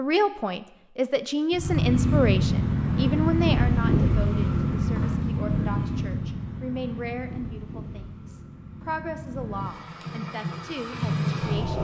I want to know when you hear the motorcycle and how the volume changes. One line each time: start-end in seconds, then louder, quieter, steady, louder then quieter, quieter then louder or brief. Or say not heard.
1.5-11.7 quieter then louder.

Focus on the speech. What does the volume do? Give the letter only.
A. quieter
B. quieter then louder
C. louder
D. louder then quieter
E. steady
A.